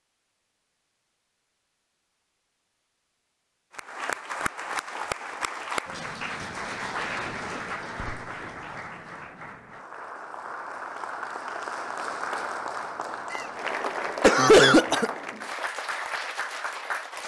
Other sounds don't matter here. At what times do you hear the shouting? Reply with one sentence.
The shouting can't be heard in this clip.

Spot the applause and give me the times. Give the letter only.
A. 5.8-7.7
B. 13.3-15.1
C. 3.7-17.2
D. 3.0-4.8
C.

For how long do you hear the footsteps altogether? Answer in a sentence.
You can't hear the footsteps here.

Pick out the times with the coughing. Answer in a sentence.
The coughing can be heard from 13.3 to 15.1 s.